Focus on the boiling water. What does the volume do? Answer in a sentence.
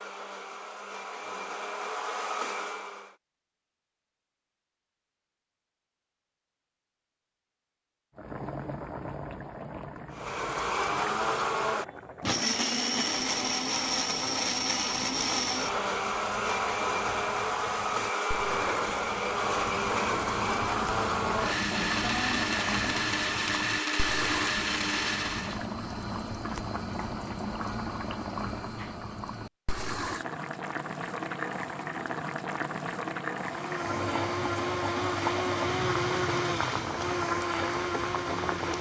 The loudness of the boiling water goes up.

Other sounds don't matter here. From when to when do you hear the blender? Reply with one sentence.
You can hear the blender from 0.0 to 3.1 s, from 10.1 to 25.6 s and from 33.4 to 38.7 s.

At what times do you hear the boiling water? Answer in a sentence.
You can hear the boiling water from 8.2 to 38.7 s.